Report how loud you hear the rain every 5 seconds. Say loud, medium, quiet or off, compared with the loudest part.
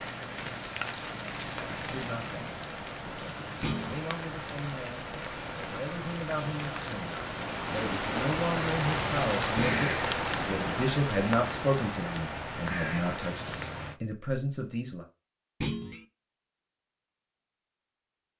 medium, loud, loud, off.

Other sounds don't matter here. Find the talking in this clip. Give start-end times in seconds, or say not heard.
1.8-15.1.